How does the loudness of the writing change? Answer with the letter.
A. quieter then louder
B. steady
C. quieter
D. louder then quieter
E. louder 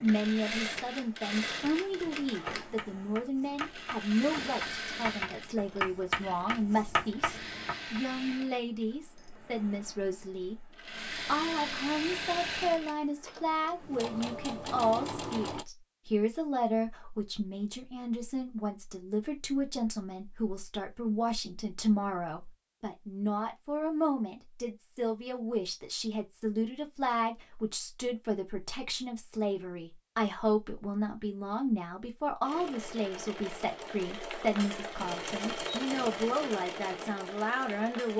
E.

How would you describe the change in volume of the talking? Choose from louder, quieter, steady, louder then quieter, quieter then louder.
steady.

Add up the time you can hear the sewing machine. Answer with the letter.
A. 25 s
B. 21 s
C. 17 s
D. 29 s
B.